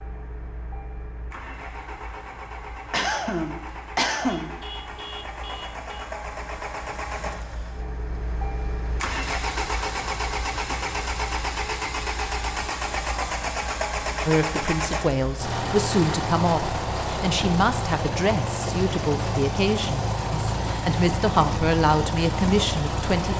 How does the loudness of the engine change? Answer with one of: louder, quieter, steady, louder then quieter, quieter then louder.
louder.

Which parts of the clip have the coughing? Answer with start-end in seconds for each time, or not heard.
2.9-4.5.